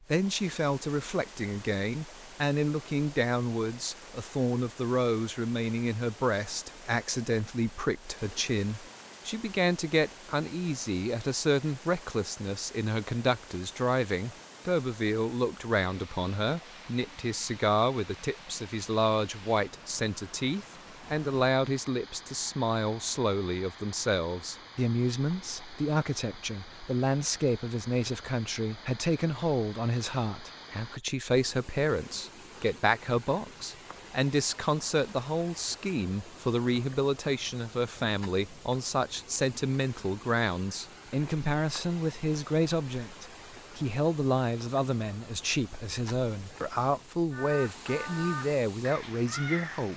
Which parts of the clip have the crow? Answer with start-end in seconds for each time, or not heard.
47.3-49.9.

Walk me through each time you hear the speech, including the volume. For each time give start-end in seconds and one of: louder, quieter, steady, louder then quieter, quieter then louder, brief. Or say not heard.
0.1-49.9 steady.